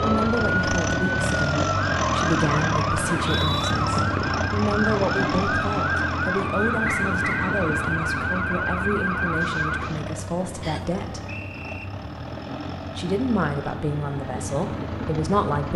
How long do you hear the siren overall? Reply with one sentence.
The siren can be heard for 10 seconds in total.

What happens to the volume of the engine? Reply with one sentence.
The volume of the engine goes down.